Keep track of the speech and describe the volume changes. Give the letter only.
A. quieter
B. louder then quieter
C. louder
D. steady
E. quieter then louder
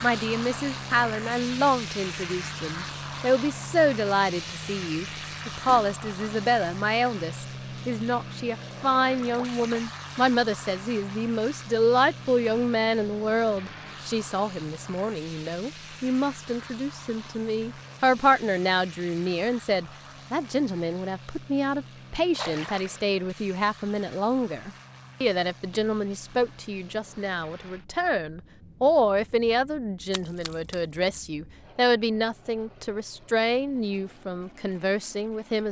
D.